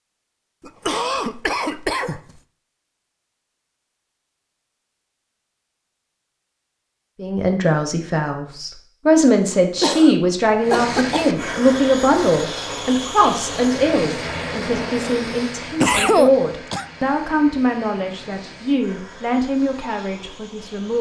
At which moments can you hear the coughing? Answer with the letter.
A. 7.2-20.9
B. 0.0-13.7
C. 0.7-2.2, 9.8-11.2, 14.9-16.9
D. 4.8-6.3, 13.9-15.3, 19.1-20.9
C.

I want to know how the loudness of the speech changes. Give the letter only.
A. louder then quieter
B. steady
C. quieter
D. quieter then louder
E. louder
C.